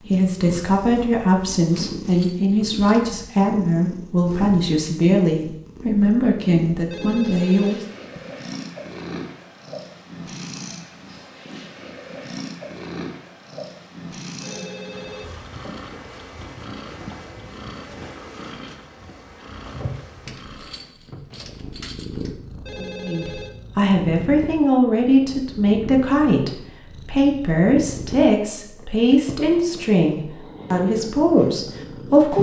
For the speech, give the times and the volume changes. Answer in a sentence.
The speech can be heard from 0.1 to 7.8 s, at a steady volume; and from 23.1 to 32.3 s, at a steady volume.